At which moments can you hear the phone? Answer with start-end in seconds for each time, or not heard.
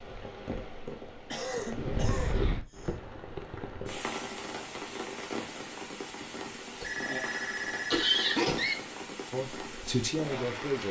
6.8-8.3.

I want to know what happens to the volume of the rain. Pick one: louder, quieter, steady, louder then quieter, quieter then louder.
steady.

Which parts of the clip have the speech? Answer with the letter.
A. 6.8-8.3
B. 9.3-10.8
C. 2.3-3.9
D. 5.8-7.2
B.